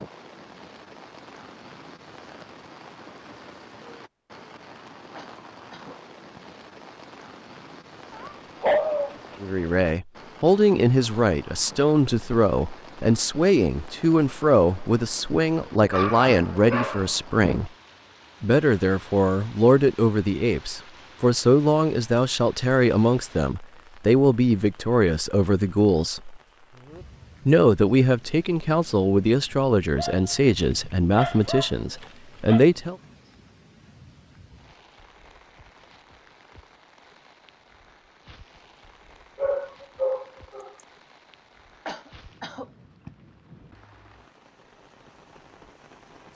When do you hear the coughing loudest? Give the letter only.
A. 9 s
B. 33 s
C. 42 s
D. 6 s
C.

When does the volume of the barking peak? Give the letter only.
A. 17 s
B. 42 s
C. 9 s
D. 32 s
C.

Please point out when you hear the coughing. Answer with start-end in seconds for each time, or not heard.
5.2-6.4, 41.9-43.1.